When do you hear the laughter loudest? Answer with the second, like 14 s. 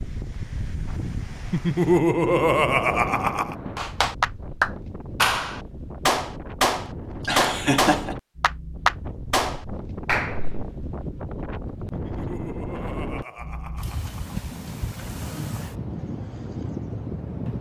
2 s.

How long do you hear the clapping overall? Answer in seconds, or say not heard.
7 s.